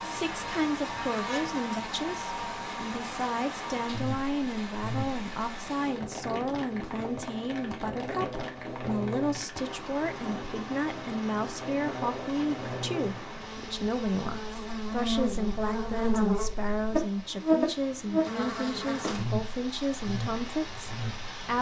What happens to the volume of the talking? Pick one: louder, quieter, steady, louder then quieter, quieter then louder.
steady.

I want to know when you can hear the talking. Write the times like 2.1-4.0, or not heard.
0.0-21.5.